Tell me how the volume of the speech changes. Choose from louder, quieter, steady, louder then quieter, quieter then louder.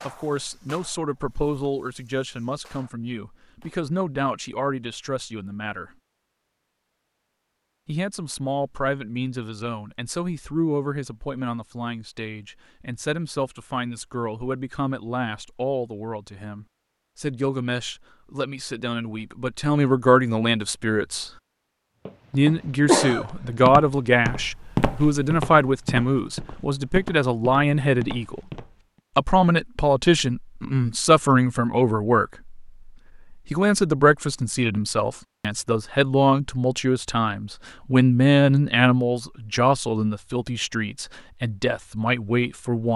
louder.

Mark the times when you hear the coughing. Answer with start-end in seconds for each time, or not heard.
22.9-23.6.